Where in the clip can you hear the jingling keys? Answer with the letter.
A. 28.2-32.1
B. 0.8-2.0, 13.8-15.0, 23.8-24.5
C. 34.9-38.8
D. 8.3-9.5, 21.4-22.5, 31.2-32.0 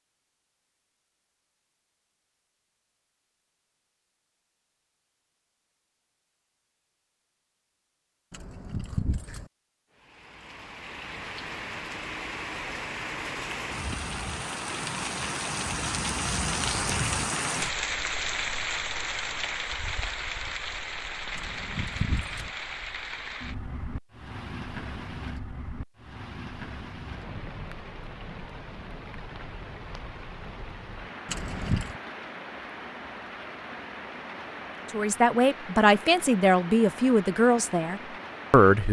D.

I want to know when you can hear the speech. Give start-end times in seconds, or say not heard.
34.9-38.8.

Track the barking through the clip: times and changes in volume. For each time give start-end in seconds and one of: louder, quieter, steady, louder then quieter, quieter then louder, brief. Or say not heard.
not heard.